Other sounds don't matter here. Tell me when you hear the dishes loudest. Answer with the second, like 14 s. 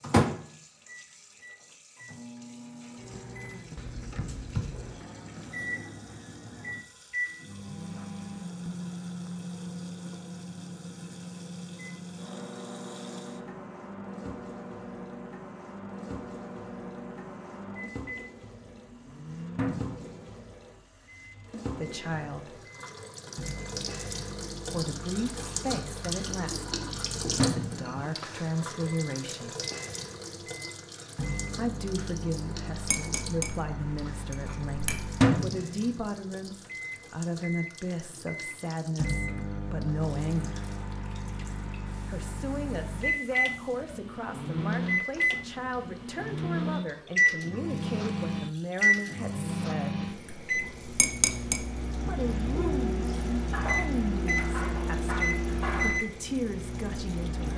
51 s.